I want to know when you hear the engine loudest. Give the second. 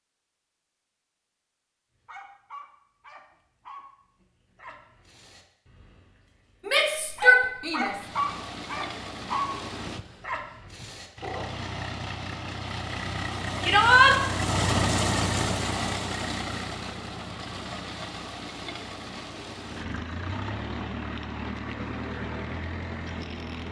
15 s.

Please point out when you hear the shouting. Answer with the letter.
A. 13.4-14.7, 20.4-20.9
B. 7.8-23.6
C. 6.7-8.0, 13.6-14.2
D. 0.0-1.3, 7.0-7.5
C.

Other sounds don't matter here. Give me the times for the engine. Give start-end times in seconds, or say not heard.
7.8-23.6.